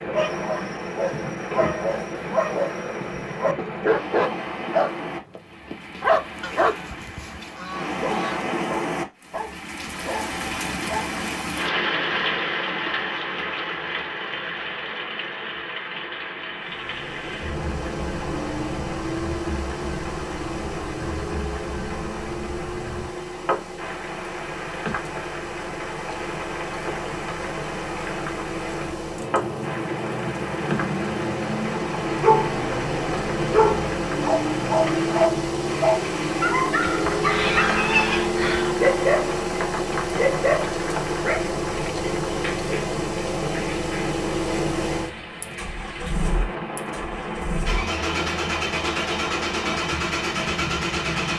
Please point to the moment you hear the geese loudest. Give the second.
38 s.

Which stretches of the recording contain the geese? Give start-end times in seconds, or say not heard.
6.4-8.4, 36.8-38.8.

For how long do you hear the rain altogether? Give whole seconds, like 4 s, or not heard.
51 s.